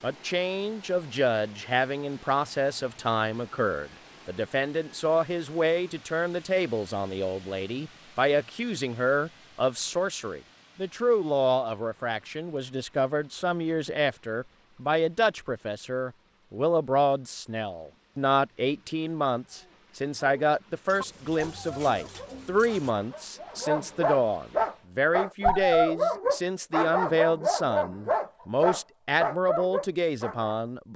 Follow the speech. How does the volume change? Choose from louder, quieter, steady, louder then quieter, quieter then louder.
steady.